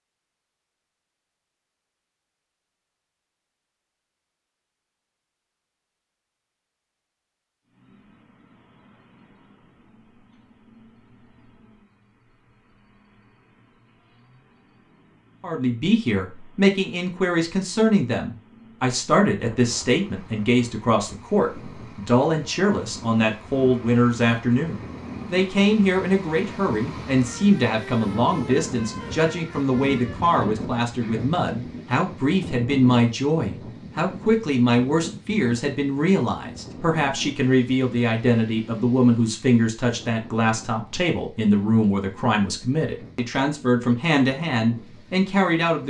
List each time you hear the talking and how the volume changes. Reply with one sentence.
You can hear the talking from 15.4 to 45.8 s, at a steady volume.